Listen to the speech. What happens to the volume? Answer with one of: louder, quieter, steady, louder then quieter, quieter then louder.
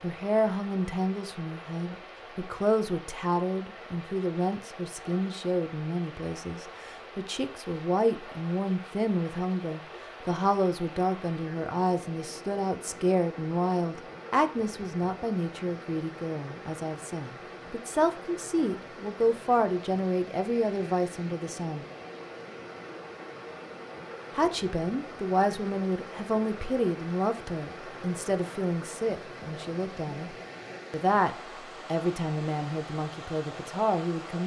steady.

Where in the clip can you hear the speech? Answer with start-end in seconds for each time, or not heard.
0.0-21.9, 24.4-34.4.